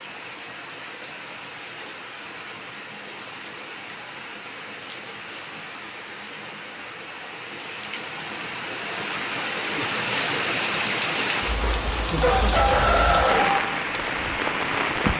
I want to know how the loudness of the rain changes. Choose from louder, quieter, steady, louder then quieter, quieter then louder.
louder.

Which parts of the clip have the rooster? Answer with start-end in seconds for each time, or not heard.
11.6-13.6.